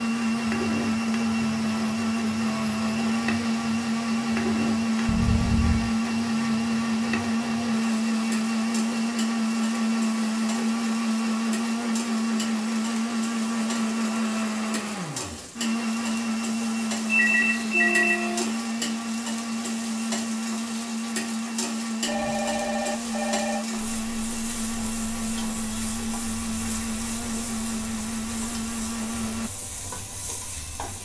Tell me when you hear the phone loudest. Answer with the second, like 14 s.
18 s.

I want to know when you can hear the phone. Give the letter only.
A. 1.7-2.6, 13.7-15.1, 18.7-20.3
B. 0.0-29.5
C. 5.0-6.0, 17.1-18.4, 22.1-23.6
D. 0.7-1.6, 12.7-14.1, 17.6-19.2
C.